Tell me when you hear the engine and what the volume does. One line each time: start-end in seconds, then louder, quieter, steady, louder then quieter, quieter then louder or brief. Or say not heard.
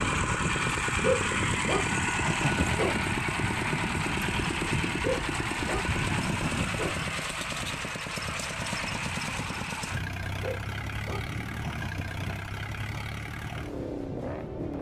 0.0-14.7 quieter.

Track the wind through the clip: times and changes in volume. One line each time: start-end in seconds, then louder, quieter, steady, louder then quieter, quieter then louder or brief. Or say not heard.
0.0-14.7 quieter.